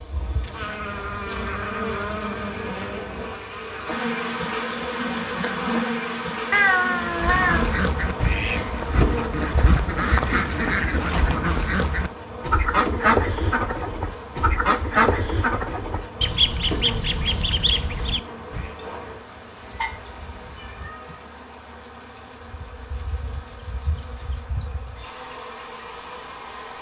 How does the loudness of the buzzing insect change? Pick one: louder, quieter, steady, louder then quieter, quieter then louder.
quieter.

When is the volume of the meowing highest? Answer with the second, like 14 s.
7 s.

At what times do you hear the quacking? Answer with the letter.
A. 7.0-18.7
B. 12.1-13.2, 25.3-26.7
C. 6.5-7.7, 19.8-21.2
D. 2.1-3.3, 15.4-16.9
A.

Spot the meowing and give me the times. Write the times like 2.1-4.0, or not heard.
6.5-7.7, 19.8-21.2.